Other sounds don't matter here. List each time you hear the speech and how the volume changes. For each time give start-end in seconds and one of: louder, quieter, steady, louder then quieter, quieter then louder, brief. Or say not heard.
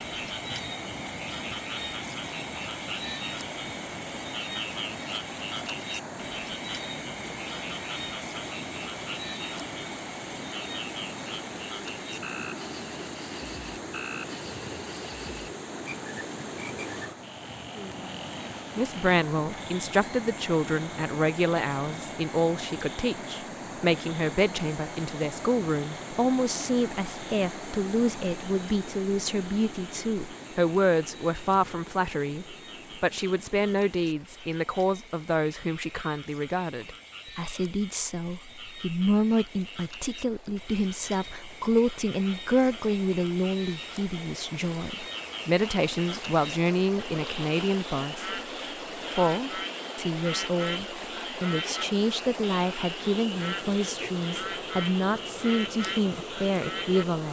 18.8-48.4 steady
49.1-57.2 steady.